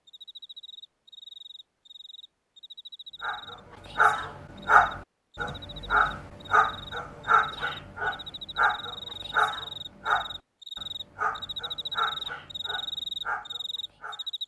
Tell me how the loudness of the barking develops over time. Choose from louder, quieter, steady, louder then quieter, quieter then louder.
quieter.